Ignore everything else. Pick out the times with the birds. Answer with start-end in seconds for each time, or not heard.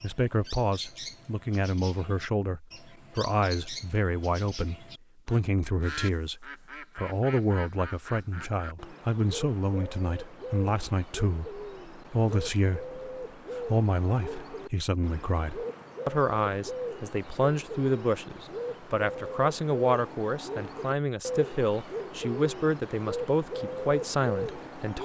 0.0-24.9.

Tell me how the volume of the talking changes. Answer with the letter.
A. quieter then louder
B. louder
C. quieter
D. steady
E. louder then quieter
D.